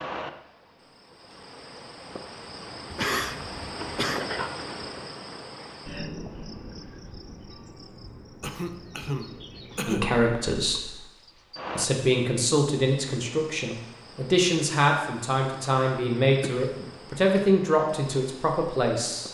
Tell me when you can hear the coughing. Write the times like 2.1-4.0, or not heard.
2.9-4.3, 8.4-10.2, 16.4-17.2.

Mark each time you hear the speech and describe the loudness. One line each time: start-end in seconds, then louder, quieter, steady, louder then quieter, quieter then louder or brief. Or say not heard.
9.8-10.9 brief
11.8-19.2 steady.